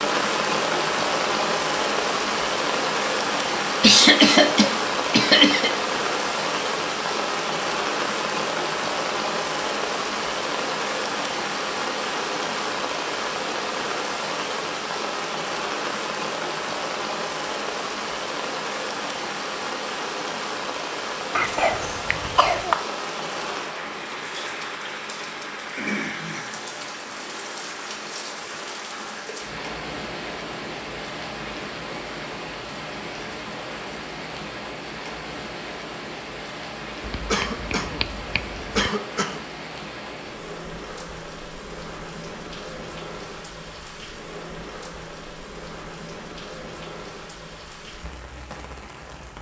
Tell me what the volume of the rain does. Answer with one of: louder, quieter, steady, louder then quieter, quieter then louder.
quieter.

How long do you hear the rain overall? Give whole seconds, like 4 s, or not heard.
49 s.